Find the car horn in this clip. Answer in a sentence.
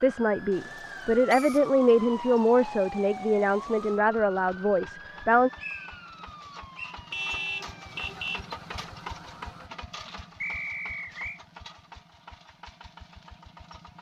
You can hear the car horn from 7.1 to 8.5 s.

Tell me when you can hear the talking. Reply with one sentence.
You can hear the talking from 0.0 to 5.5 s.